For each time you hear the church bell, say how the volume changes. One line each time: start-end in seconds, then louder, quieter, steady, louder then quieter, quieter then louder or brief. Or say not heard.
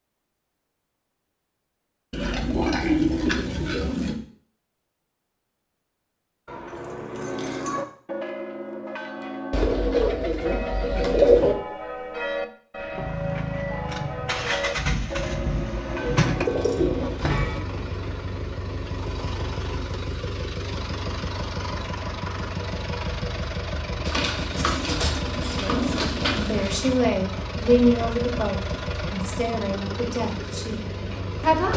7.0-17.6 steady.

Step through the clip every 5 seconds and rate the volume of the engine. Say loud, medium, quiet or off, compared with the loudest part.
off, off, loud, loud, loud, loud, loud.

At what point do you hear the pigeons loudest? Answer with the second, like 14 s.
11 s.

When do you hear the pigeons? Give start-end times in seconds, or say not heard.
2.1-4.2, 9.5-11.6, 15.9-17.6, 24.1-26.9.